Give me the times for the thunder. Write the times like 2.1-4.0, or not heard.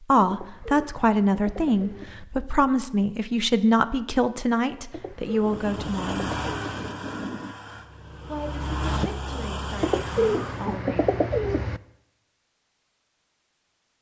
5.5-7.5.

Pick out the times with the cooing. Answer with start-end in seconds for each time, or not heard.
0.2-2.2, 4.9-6.9, 9.8-11.8.